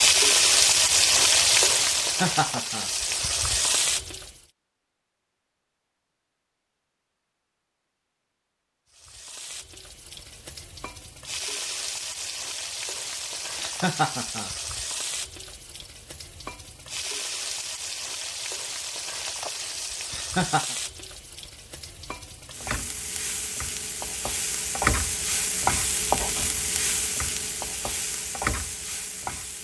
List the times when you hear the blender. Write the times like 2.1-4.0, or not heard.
not heard.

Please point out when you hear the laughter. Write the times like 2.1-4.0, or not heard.
1.9-2.9, 13.6-14.5, 20.1-20.8.